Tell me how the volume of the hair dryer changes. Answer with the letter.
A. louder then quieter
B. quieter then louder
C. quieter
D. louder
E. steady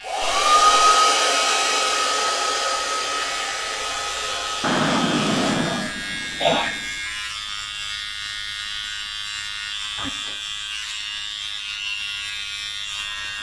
C.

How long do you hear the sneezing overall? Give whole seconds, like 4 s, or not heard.
3 s.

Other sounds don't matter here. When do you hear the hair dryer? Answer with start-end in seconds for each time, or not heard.
0.0-5.6.